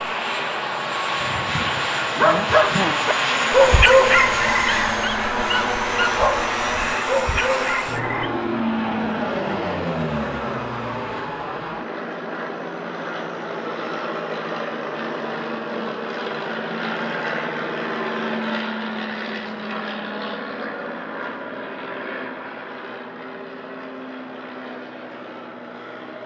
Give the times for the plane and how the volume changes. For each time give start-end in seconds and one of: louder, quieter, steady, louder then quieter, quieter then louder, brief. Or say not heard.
0.0-26.2 quieter.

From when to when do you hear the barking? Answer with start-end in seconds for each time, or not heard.
1.2-8.3.